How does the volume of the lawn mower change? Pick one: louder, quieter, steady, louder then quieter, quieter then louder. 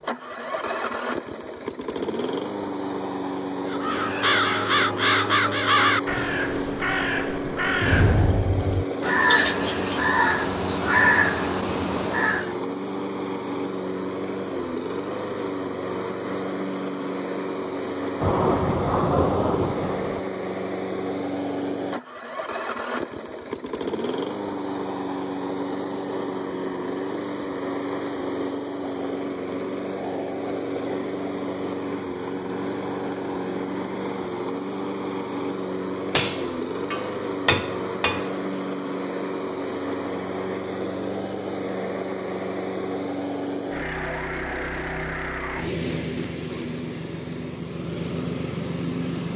steady.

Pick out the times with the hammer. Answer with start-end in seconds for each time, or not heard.
36.1-38.4.